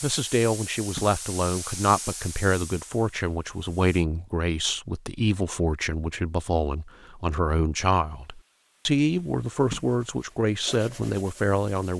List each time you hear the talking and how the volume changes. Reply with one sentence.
The talking can be heard from 0.0 to 11.9 s, at a steady volume.